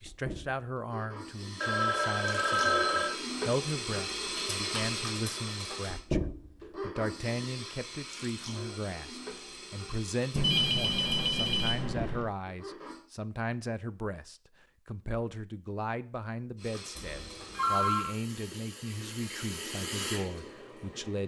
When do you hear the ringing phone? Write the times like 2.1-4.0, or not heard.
1.6-3.1, 10.3-12.3, 16.9-18.1.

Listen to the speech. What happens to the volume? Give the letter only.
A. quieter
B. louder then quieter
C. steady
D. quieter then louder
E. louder
C.